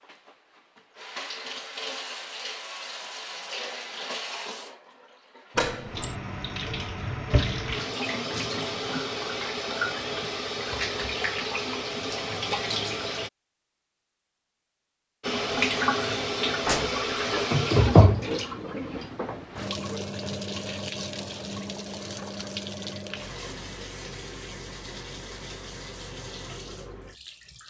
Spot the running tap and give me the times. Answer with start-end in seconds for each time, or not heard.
0.1-13.3, 15.2-27.6.